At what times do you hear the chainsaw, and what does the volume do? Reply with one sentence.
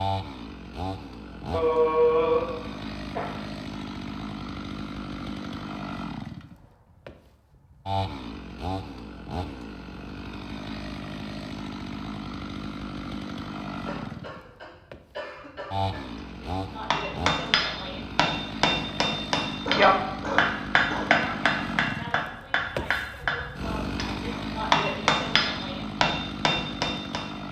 The chainsaw can be heard from 0.0 to 27.4 s, at a steady volume.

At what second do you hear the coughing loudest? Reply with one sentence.
The loudest moment of the coughing is at 2 seconds.